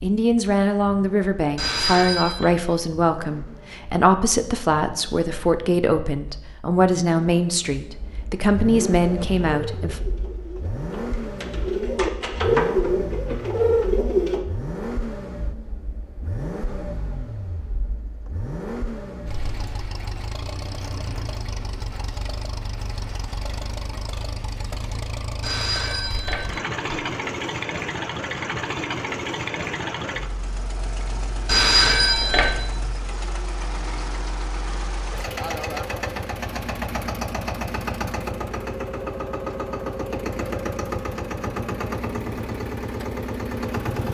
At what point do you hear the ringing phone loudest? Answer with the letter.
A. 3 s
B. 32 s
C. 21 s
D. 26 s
B.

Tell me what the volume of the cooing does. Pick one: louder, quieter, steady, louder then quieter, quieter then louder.
louder.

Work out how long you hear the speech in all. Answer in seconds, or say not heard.
10 s.